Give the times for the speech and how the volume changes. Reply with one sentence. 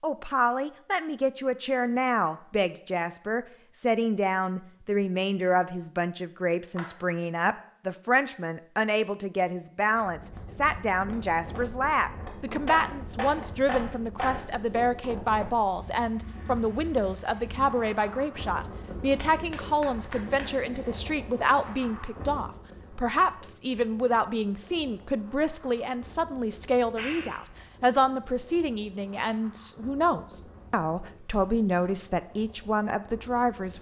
You can hear the speech from 0.0 to 33.7 s, at a steady volume.